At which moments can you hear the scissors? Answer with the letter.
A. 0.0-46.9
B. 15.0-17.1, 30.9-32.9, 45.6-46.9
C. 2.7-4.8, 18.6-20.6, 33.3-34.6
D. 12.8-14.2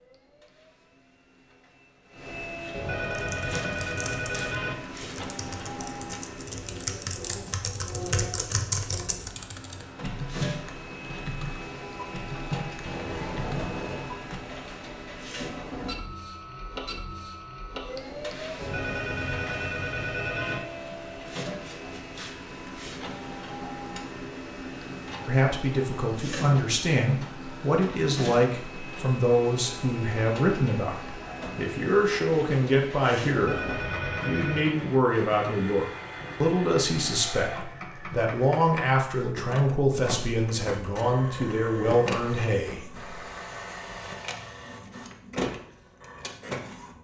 D.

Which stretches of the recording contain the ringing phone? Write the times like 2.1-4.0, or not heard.
2.7-4.8, 18.6-20.6, 33.3-34.6.